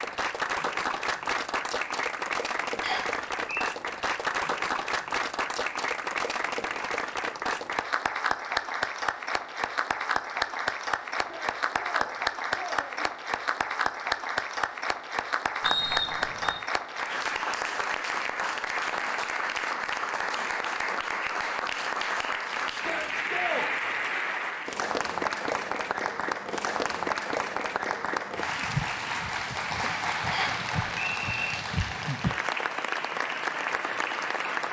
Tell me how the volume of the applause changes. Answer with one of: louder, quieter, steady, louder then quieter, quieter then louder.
steady.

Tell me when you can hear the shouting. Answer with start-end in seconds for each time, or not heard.
11.2-13.1, 22.7-23.7.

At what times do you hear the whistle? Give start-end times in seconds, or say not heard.
2.8-3.6, 15.6-16.6, 30.3-31.6.